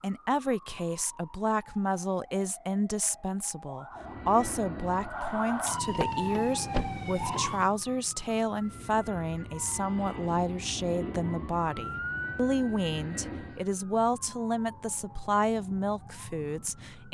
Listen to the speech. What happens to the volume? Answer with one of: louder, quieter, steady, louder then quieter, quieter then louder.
steady.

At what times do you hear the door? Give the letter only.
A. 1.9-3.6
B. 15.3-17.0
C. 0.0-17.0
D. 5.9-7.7
D.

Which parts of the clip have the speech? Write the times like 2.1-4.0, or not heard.
0.0-17.0.